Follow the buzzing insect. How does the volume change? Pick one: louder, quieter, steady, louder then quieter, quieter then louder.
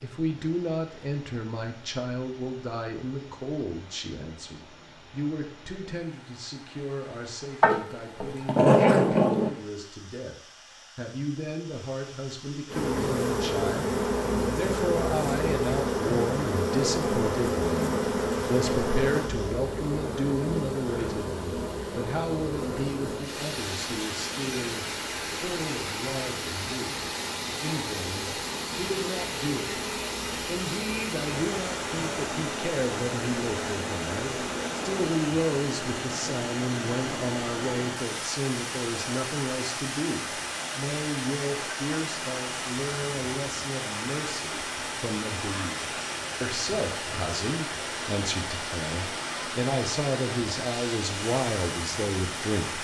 quieter.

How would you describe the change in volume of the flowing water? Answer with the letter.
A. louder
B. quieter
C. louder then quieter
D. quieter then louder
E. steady
A.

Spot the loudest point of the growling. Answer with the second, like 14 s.
9 s.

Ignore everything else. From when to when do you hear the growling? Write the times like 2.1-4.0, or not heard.
7.6-9.5.